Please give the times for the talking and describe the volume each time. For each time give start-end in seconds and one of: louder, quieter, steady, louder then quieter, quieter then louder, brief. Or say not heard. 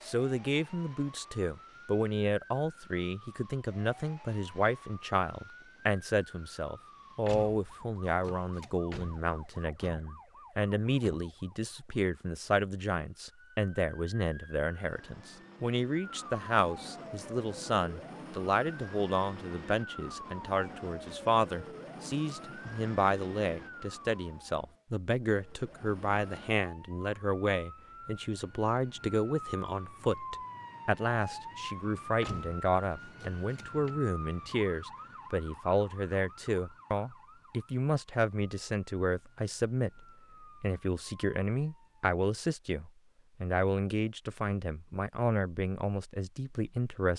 0.0-47.1 steady.